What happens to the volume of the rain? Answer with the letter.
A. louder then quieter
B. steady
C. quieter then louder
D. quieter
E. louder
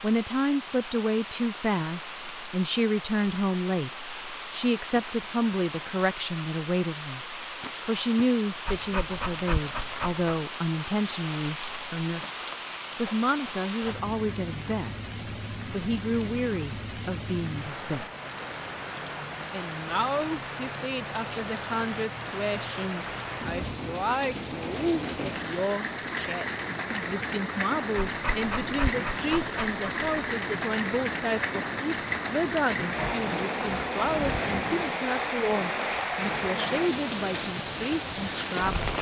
E.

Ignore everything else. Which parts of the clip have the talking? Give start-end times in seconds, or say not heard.
0.0-12.2, 12.9-18.1, 19.5-38.9.